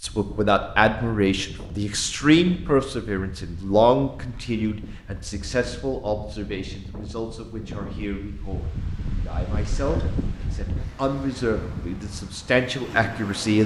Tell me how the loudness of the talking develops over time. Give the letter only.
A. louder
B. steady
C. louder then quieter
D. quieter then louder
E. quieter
D.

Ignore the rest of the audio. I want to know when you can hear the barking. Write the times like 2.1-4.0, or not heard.
not heard.